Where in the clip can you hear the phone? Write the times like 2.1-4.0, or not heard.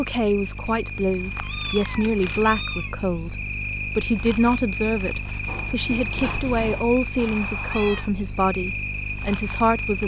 not heard.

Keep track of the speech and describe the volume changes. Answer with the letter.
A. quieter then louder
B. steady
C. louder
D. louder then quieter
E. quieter
B.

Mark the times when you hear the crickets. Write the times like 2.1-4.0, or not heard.
0.0-10.0.